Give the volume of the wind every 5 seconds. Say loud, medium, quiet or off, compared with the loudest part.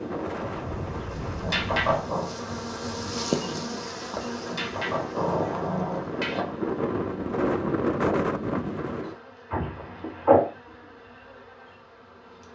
medium, loud, off.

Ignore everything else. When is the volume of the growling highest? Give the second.
10 s.